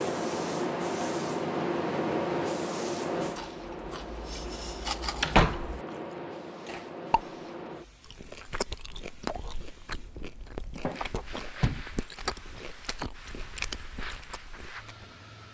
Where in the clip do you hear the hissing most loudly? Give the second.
2 s.